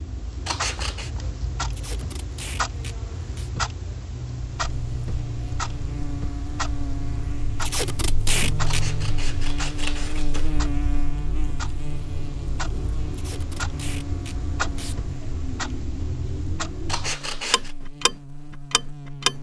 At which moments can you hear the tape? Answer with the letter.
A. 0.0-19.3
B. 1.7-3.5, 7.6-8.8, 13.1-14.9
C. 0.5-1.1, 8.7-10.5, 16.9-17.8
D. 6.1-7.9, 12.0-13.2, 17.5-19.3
B.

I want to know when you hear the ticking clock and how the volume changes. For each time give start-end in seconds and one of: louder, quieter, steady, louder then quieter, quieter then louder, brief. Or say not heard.
0.0-19.3 steady.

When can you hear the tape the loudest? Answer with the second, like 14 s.
8 s.